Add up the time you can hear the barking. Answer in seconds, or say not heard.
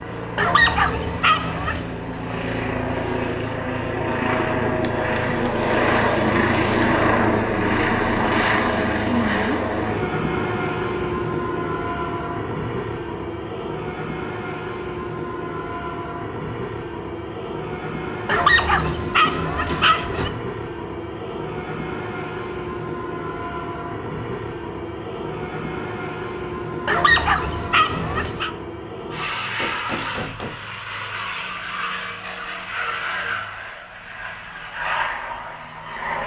5 s.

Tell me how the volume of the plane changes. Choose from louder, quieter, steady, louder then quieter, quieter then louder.
quieter.